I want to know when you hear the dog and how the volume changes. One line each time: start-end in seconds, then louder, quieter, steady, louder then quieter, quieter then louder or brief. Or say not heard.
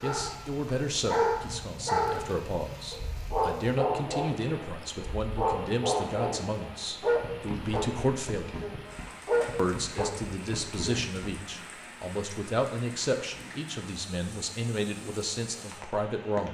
0.0-11.3 steady.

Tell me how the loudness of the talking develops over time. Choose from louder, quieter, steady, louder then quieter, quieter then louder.
steady.